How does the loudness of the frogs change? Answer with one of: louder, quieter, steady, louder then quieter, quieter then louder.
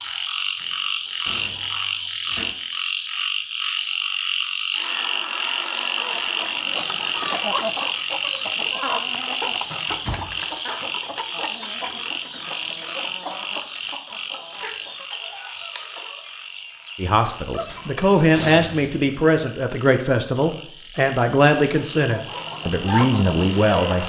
quieter.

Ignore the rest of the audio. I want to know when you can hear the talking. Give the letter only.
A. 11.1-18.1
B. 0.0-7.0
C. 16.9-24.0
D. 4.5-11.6
C.